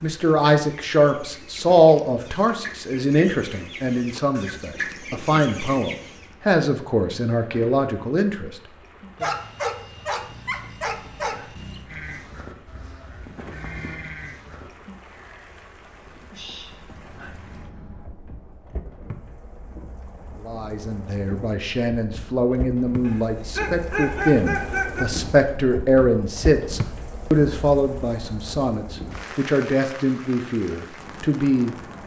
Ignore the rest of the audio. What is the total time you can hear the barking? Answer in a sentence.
The barking can be heard for 5 seconds in total.